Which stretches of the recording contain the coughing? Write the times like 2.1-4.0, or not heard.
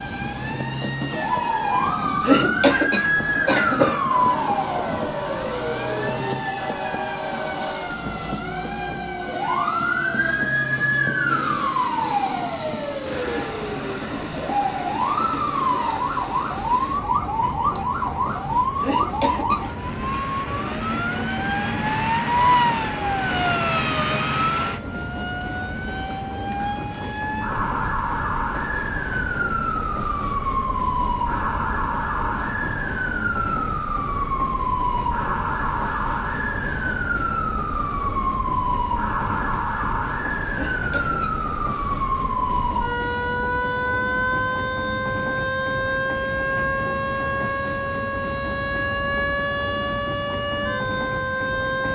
2.2-4.0, 18.8-19.6, 40.5-41.4.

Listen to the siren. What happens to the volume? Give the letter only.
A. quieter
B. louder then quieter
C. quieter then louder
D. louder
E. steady
E.